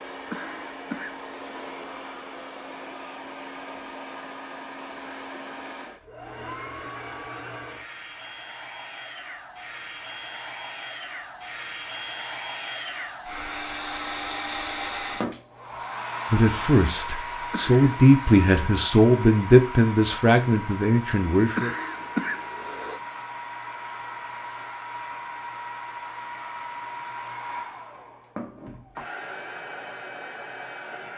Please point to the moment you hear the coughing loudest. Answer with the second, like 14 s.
22 s.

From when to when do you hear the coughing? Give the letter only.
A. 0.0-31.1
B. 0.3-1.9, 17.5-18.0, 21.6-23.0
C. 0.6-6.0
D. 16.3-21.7
B.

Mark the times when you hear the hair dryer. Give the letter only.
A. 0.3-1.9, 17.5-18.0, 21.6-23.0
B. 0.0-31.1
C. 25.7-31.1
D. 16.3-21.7
B.